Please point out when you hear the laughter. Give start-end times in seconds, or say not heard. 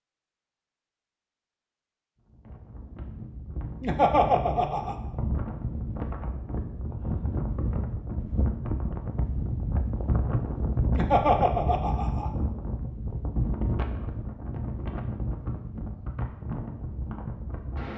3.8-5.0, 10.9-12.3.